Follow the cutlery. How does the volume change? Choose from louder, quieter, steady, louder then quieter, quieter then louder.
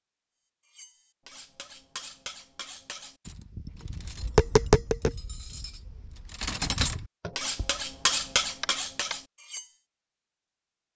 quieter then louder.